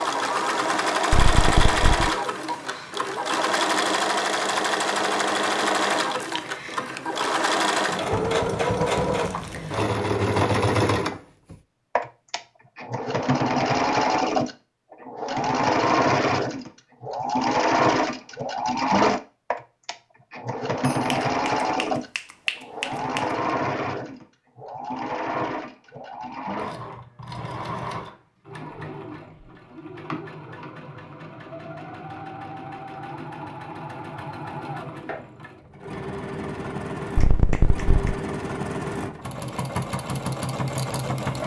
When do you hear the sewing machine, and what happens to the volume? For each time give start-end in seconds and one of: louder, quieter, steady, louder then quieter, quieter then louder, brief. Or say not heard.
0.0-41.4 quieter.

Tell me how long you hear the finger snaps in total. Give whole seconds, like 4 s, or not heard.
4 s.